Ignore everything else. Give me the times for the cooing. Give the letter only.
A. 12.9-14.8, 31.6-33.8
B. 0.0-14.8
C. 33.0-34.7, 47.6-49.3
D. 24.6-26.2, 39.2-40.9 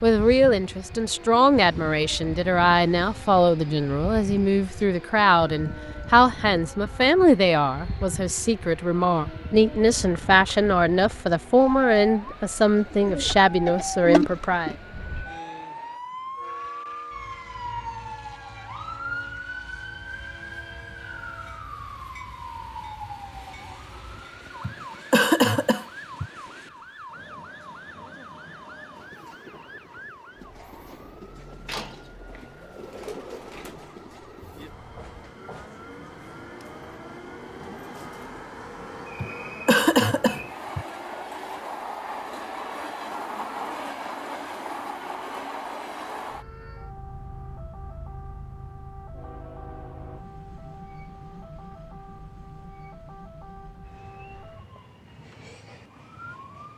A.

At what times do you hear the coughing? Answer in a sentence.
The coughing can be heard from 24.6 to 26.2 s and from 39.2 to 40.9 s.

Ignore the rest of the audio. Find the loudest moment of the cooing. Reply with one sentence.
The volume of the cooing peaks at 14 seconds.